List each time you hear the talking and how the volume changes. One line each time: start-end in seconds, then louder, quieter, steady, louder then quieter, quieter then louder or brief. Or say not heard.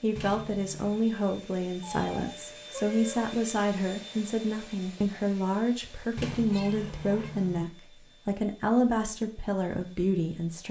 0.0-10.6 steady.